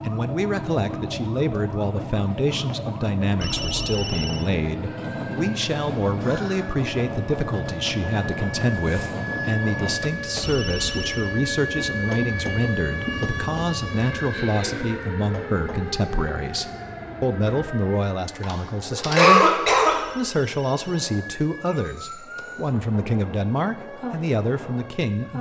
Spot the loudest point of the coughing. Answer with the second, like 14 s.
19 s.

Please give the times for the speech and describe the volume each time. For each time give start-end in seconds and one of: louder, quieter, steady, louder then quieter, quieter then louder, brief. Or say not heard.
0.0-25.3 steady.